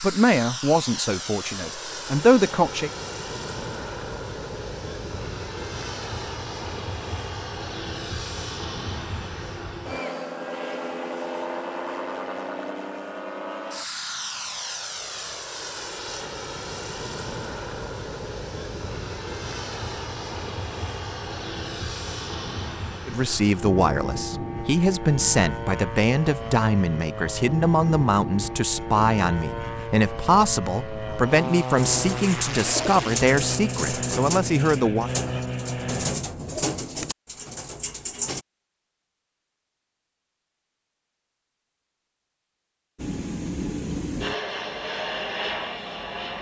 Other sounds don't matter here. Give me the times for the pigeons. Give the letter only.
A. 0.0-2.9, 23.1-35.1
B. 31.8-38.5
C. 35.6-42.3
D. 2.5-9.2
B.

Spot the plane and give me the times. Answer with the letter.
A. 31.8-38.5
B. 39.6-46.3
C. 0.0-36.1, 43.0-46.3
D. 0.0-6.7
C.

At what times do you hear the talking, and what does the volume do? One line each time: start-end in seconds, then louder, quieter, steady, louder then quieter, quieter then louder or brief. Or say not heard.
0.0-2.9 brief
23.1-35.1 steady.